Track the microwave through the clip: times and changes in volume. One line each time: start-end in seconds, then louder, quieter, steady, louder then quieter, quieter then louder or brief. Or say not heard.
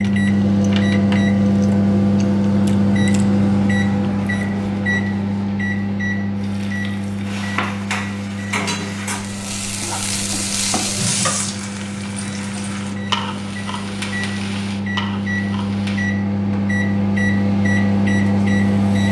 0.0-19.0 quieter then louder.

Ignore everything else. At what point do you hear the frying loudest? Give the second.
11 s.